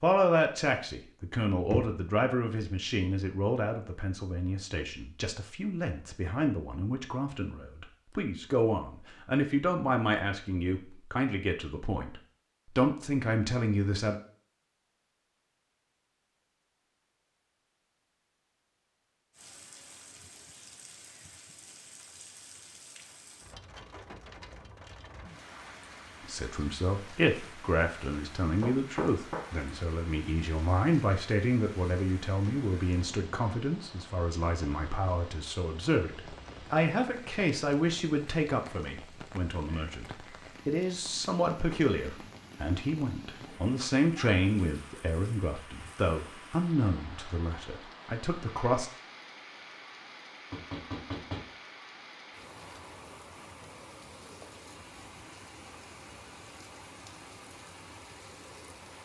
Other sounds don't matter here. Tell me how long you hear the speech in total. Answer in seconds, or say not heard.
37 s.